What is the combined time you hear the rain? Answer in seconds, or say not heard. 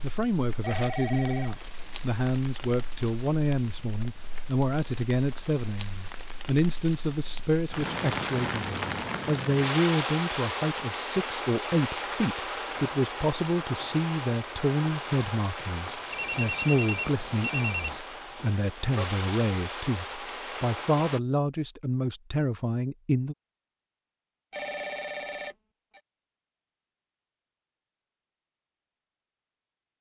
21 s.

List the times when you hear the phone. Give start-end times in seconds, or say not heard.
0.6-1.5, 16.1-18.0, 24.5-26.0.